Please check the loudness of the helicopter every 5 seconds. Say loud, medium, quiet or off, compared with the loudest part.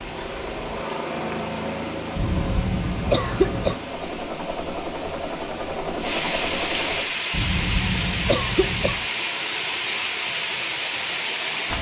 loud, loud, off.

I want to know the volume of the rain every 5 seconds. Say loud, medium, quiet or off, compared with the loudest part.
quiet, loud, loud.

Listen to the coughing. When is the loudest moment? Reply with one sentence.
The volume of the coughing peaks at 3 seconds.